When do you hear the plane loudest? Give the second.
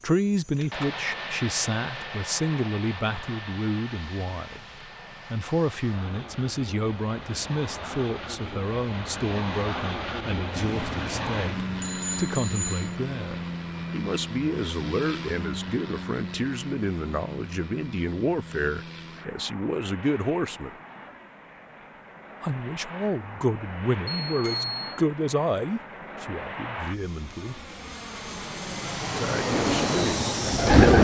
30 s.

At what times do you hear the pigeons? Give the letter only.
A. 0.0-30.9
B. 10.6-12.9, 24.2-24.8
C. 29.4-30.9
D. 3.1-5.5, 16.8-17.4
C.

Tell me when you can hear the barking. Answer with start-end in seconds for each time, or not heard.
not heard.